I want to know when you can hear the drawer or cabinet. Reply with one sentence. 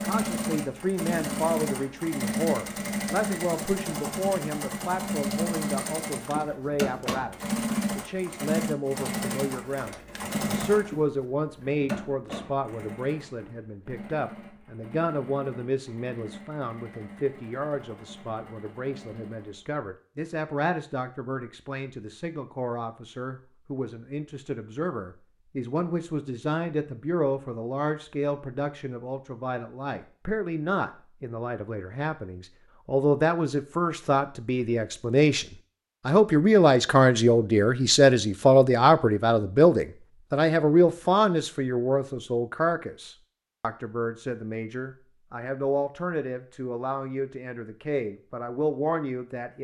The drawer or cabinet can't be heard in this clip.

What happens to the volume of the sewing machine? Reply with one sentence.
The volume of the sewing machine goes down.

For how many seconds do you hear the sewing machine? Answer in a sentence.
The sewing machine can be heard for 20 seconds in total.